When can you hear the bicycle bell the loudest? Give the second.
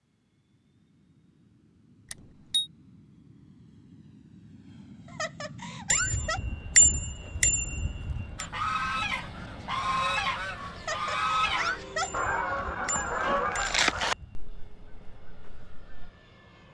7 s.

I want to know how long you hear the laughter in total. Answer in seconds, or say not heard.
3 s.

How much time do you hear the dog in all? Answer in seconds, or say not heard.
not heard.